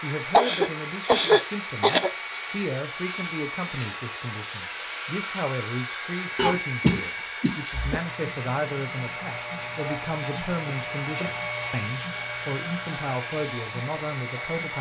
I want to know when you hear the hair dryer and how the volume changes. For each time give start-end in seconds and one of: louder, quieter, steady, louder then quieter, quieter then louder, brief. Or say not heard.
0.0-14.7 steady.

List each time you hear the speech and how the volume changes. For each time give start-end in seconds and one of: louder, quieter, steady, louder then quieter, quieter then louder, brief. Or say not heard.
0.0-14.7 steady.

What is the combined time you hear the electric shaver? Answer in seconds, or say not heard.
15 s.